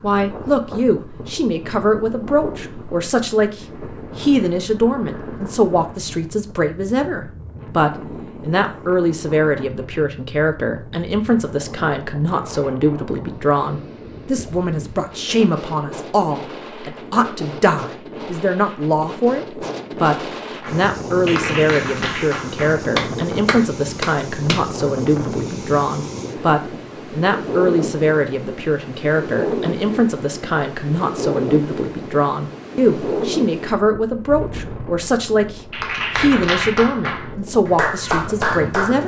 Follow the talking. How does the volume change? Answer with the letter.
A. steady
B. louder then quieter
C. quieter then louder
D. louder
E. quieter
A.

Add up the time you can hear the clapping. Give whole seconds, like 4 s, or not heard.
8 s.